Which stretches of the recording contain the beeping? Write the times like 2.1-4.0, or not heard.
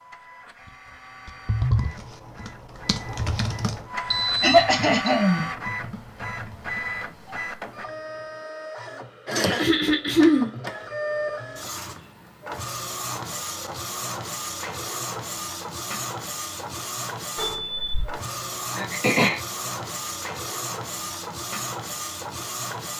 4.1-5.2, 17.4-18.2.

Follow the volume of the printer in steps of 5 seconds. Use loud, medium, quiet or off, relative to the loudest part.
medium, loud, loud, loud, loud.